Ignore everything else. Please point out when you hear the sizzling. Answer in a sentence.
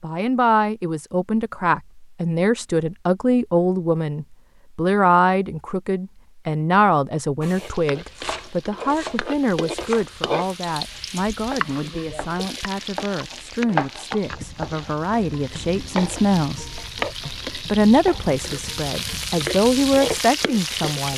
The sizzling can be heard from 7.4 to 21.1 s.